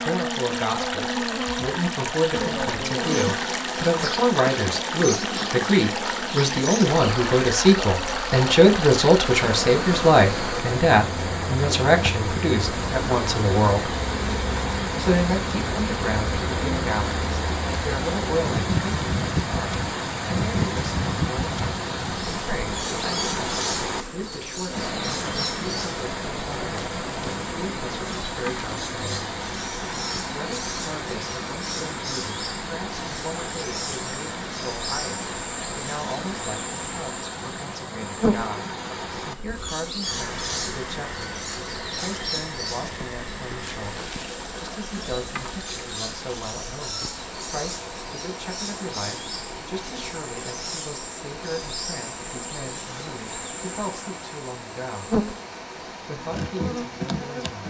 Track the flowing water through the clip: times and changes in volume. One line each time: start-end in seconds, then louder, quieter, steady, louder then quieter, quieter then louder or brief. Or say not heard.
0.0-57.6 quieter.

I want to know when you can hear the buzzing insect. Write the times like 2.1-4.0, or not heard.
0.0-57.6.